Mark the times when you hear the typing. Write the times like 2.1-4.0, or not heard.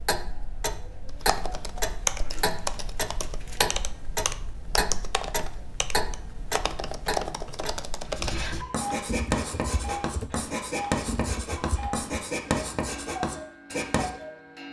1.1-12.2.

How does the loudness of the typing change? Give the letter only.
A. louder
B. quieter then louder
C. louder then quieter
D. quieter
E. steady
D.